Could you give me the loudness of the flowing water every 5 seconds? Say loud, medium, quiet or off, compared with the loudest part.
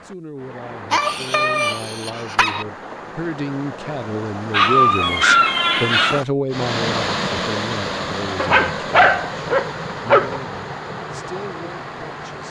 medium, loud, medium.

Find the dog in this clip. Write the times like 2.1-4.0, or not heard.
0.9-2.6, 4.5-6.2, 8.3-10.4.